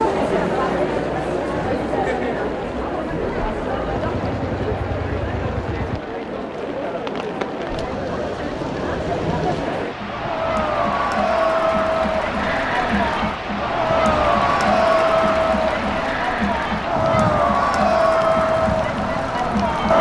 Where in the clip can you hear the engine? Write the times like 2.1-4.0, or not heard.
3.2-6.0.